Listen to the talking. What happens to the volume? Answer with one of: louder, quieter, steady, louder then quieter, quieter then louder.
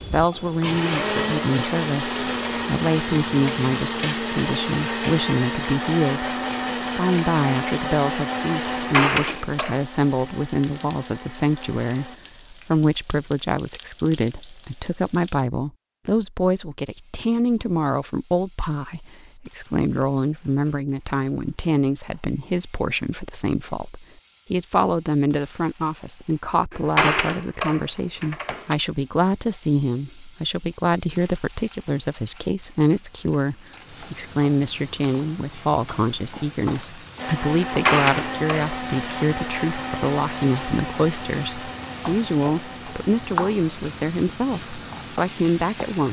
steady.